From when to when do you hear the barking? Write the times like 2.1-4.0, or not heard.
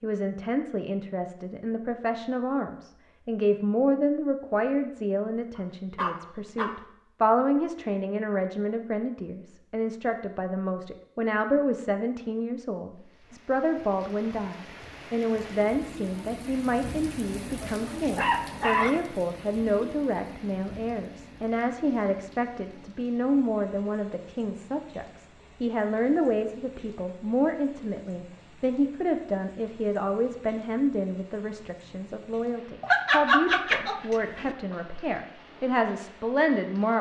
5.5-6.8, 17.6-18.9, 32.8-34.5.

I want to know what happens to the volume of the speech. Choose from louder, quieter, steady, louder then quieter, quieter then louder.
steady.